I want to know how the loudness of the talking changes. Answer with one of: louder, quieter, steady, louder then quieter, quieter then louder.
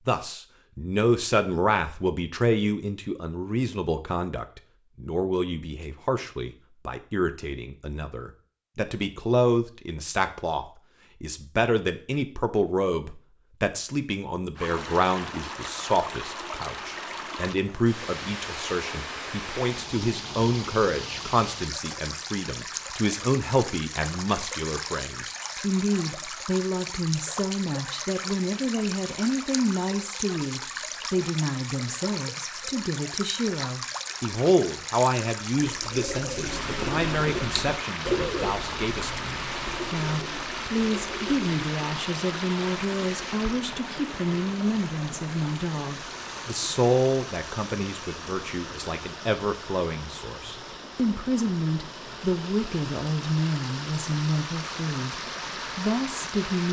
steady.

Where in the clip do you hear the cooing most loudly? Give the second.
38 s.